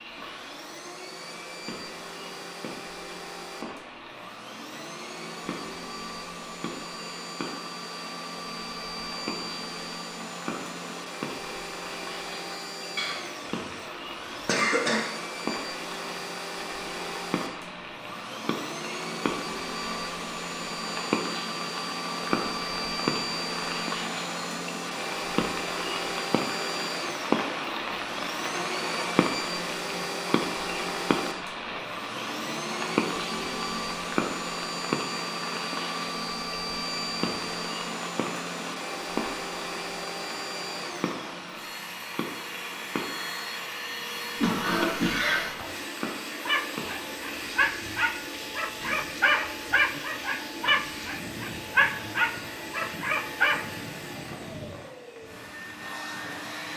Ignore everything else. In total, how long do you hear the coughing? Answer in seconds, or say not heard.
3 s.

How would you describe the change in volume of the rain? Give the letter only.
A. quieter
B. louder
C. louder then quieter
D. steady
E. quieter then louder
C.